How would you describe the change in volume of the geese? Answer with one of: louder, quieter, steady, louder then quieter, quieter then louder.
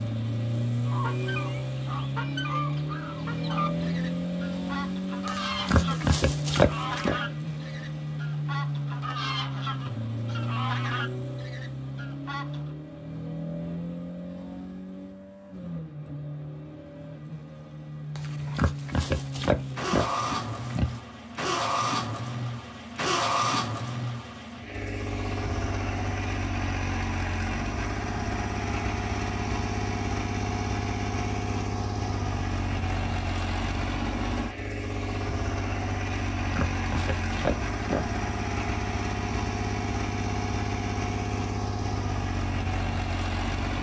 steady.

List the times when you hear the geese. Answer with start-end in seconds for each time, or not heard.
0.8-12.8.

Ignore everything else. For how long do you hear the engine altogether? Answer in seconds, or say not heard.
44 s.